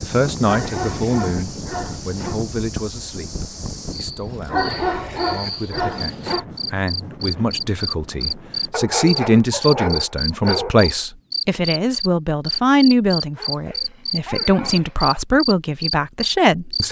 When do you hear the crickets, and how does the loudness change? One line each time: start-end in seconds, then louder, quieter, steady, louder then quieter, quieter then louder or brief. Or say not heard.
0.0-16.8 louder.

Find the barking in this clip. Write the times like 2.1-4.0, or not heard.
0.4-2.4, 4.2-6.5, 8.7-10.9, 13.3-15.2.